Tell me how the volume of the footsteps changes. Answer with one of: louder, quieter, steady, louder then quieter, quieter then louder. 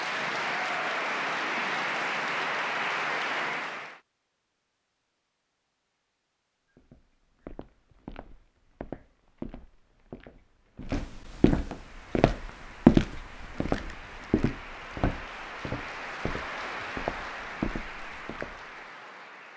louder then quieter.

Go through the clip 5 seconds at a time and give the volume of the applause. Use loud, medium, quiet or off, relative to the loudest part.
loud, off, quiet, medium.